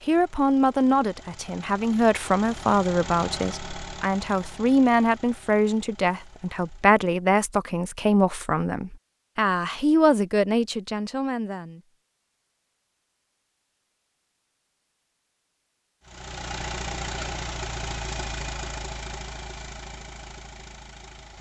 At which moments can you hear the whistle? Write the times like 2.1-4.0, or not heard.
not heard.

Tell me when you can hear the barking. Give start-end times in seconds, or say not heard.
not heard.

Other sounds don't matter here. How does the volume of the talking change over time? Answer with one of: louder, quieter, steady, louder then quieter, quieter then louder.
steady.